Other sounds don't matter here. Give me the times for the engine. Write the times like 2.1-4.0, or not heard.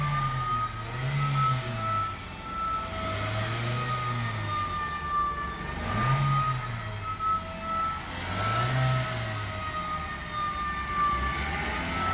0.0-12.0.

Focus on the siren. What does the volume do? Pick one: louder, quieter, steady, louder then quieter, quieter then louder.
steady.